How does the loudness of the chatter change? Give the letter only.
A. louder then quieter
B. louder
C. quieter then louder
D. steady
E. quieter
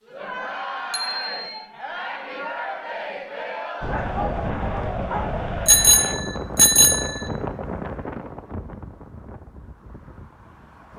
D.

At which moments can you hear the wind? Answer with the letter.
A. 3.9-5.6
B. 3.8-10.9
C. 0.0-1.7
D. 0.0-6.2
B.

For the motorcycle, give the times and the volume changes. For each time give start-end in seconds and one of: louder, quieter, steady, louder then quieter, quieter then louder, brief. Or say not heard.
not heard.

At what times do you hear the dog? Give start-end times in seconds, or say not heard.
3.9-5.6.